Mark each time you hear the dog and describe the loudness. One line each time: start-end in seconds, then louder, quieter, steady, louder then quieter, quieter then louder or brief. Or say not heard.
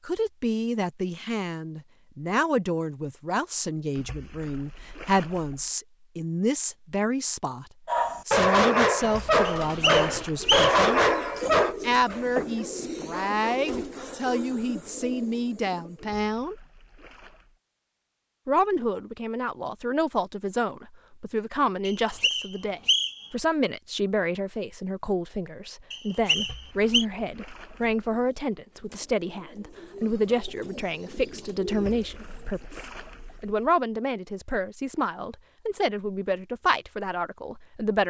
7.8-14.6 quieter.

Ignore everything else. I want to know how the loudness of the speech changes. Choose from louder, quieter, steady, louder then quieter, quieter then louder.
steady.